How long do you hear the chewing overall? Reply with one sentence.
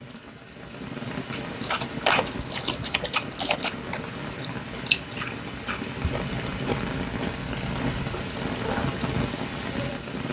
You can hear the chewing for 8 seconds altogether.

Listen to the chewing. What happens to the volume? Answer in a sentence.
The volume of the chewing goes down.